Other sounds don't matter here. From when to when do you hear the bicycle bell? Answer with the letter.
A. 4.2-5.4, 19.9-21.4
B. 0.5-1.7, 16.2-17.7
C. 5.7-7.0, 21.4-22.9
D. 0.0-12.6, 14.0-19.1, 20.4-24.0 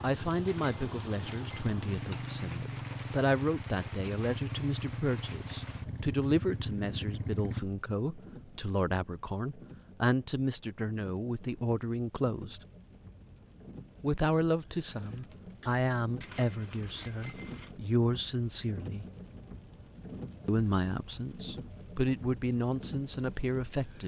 B.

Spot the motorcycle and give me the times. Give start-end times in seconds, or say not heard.
0.0-7.7.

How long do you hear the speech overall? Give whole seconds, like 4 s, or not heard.
21 s.